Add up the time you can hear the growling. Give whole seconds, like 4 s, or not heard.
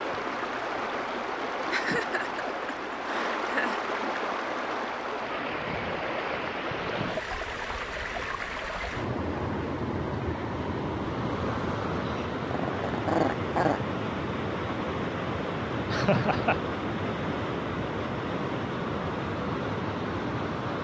2 s.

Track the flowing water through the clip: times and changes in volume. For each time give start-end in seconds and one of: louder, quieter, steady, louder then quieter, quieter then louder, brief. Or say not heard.
0.0-20.7 steady.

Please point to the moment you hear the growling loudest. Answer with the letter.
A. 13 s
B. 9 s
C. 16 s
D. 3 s
A.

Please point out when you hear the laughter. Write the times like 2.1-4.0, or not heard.
1.7-3.8, 15.8-16.6.